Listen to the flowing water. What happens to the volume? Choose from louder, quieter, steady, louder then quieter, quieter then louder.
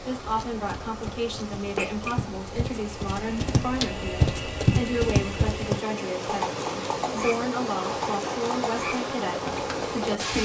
louder.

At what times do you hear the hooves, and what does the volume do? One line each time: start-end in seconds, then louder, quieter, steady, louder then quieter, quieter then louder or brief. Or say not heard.
0.0-10.3 louder then quieter.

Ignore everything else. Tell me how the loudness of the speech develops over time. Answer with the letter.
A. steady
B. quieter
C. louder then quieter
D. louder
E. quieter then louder
A.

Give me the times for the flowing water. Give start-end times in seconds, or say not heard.
0.0-10.3.